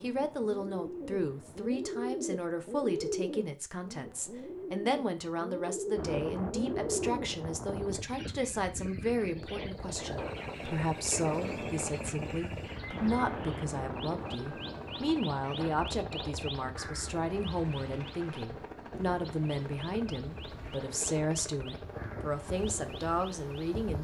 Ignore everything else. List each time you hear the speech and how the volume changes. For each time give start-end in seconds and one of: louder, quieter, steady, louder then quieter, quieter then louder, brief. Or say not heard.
0.0-23.9 steady.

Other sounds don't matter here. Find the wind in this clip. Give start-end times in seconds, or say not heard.
6.0-23.9.